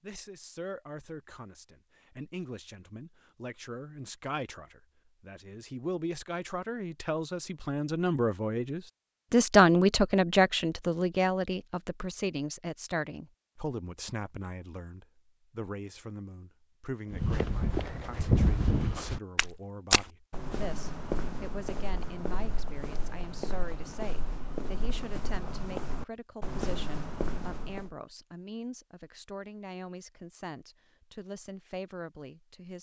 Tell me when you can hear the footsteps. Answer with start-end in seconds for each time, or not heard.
17.1-27.9.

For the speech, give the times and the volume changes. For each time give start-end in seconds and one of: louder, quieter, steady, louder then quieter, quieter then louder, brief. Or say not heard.
0.0-32.7 louder then quieter.